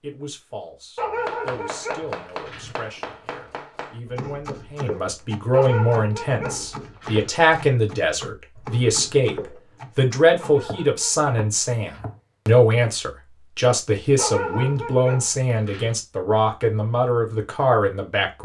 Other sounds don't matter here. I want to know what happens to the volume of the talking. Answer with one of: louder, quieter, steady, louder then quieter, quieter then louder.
louder.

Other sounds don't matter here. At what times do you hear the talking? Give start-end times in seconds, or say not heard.
0.0-18.4.